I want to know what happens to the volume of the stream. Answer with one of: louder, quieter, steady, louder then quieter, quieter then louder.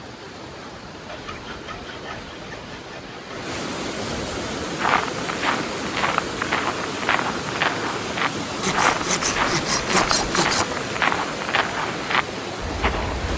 louder.